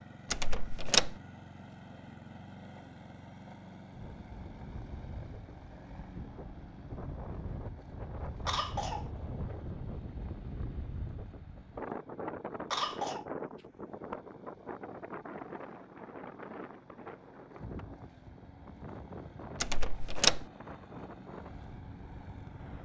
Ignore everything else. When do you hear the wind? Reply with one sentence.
The wind can be heard from 3.9 to 22.8 s.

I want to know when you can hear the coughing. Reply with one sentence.
The coughing can be heard from 8.4 to 9.1 s and from 12.7 to 13.2 s.